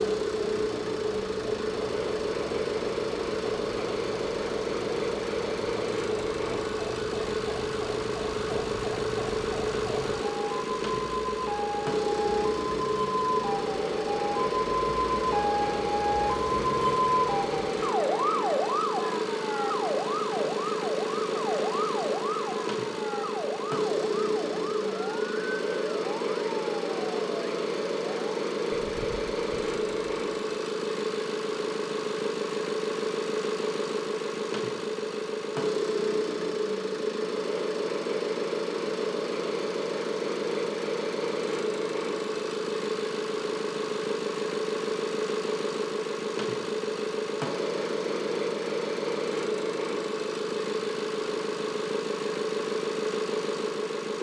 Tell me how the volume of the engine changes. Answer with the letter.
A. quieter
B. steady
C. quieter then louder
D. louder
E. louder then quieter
B.